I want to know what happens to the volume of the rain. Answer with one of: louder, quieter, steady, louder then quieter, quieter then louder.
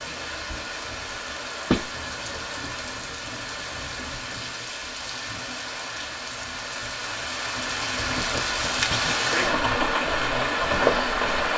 louder.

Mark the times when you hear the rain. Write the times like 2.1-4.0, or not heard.
0.0-11.5.